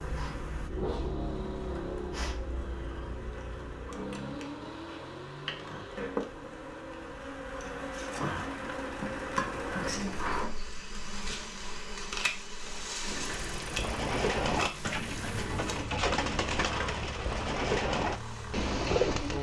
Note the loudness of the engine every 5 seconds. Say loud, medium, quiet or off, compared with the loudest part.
loud, medium, loud, loud.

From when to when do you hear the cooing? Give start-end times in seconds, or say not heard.
13.3-19.3.